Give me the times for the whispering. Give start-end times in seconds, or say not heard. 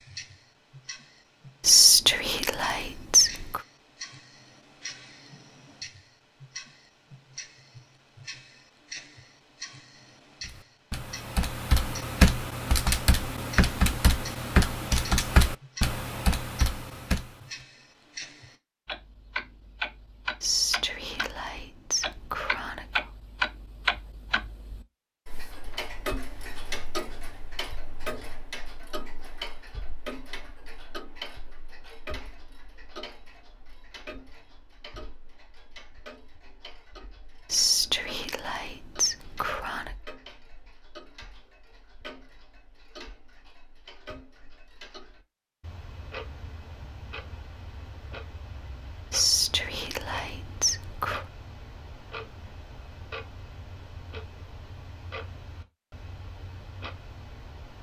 1.6-3.6, 20.4-23.1, 37.5-39.9, 49.1-51.2.